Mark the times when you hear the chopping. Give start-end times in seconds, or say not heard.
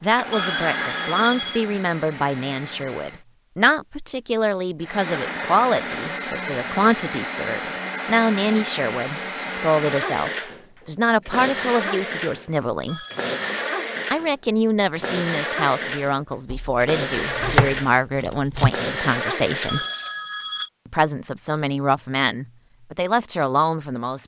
16.5-18.7.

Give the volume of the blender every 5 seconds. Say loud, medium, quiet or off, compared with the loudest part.
medium, loud, loud, loud, off.